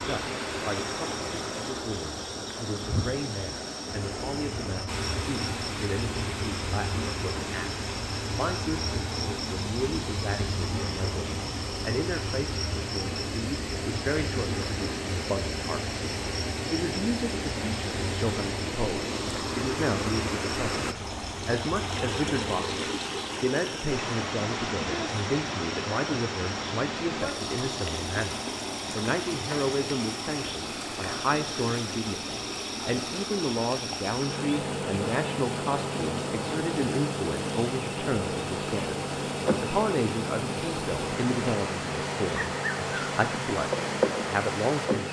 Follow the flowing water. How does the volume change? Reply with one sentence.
The volume of the flowing water stays about the same.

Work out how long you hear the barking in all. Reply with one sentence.
The barking can't be heard in this clip.